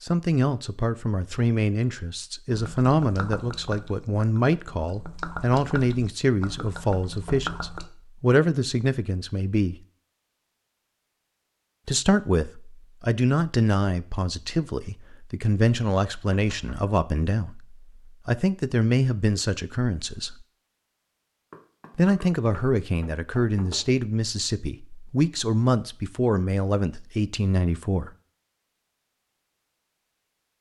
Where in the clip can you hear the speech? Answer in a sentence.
You can hear the speech from 0.0 to 9.8 s, from 11.8 to 20.4 s and from 21.9 to 28.1 s.